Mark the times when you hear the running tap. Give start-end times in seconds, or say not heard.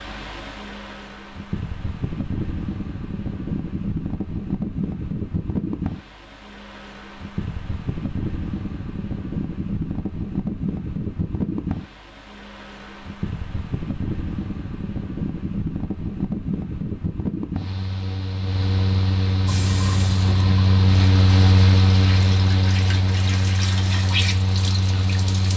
19.4-25.5.